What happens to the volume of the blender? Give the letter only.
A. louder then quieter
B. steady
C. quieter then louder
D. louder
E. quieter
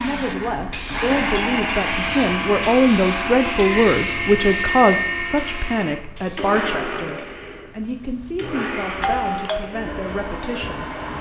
E.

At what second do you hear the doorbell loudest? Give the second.
9 s.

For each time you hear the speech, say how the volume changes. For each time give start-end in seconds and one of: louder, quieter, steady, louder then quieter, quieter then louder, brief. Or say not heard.
0.0-10.9 louder then quieter.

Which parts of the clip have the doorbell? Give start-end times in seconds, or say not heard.
1.1-1.7, 8.4-9.6.